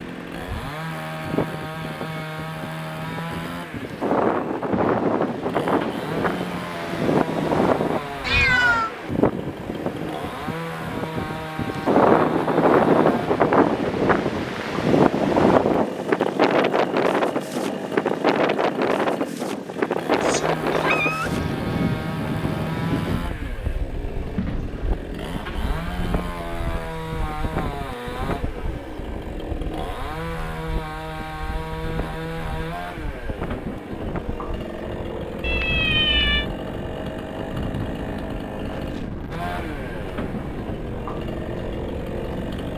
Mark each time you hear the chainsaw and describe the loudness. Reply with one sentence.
The chainsaw can be heard from 0.0 to 42.7 s, at a steady volume.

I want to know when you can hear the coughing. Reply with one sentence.
You can't hear the coughing here.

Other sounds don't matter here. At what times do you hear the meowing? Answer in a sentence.
You can hear the meowing from 8.2 to 8.9 s, from 20.2 to 21.4 s and from 35.4 to 36.5 s.